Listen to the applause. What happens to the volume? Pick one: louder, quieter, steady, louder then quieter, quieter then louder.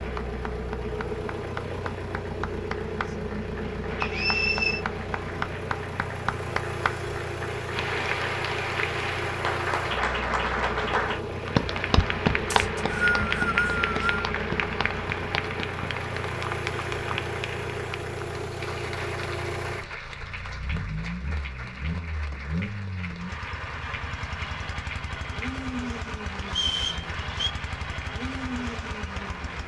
louder then quieter.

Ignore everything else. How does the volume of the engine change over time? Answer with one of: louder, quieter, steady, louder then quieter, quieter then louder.
steady.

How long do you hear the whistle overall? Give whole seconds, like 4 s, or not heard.
4 s.